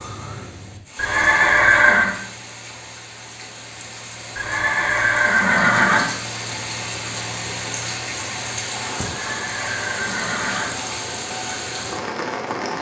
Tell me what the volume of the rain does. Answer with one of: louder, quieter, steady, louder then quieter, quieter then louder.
louder.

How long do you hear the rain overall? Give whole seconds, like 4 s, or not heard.
13 s.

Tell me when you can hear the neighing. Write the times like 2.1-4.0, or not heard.
0.9-2.1, 4.3-6.0, 9.0-10.7.